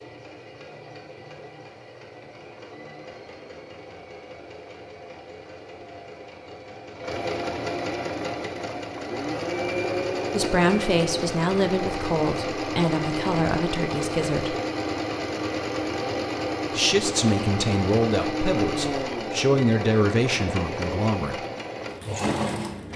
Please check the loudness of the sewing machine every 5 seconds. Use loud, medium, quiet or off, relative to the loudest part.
quiet, loud, loud, loud, loud.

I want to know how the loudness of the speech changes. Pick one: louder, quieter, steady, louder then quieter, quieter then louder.
steady.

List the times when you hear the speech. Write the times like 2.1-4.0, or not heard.
10.3-14.6, 16.8-21.4.